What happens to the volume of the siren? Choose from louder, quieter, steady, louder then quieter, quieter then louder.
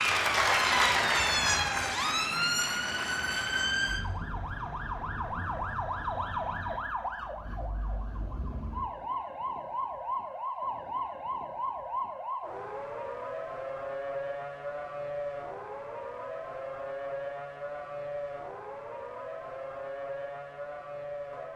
quieter.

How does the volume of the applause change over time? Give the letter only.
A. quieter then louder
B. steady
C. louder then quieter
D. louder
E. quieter
E.